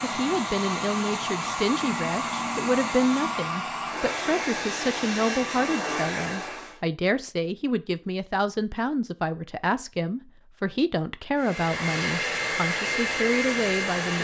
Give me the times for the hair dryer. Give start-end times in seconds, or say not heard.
0.0-6.8, 11.3-14.2.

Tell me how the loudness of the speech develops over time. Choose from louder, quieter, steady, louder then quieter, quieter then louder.
steady.